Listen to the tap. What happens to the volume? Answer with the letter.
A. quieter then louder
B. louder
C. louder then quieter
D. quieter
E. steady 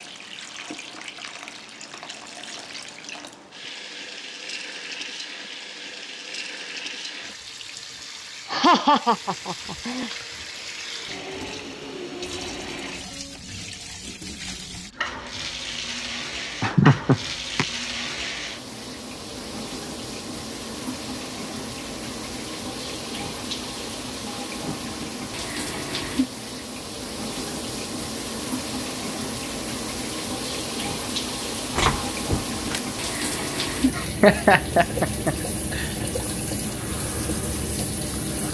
B.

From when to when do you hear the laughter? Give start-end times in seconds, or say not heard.
8.5-10.1, 16.6-17.6, 34.0-35.9.